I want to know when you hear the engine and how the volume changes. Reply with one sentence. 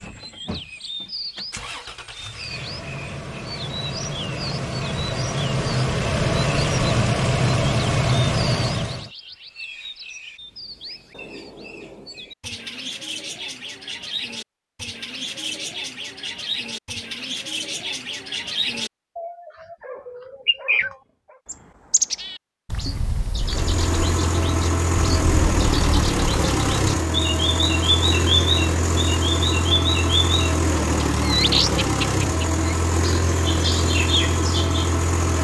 You can hear the engine from 0.0 to 9.1 s, getting louder; and from 23.4 to 35.4 s, at a steady volume.